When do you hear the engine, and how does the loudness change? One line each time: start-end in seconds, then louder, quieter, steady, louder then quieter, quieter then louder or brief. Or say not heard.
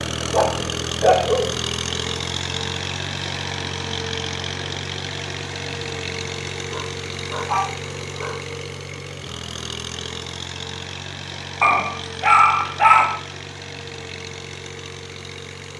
0.0-15.7 quieter.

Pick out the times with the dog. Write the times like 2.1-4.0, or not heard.
0.3-1.6, 6.5-8.4, 11.6-13.2.